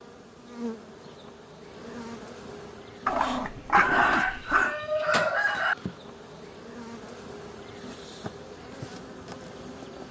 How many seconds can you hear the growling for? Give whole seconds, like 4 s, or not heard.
2 s.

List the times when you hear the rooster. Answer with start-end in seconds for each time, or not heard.
3.7-5.8.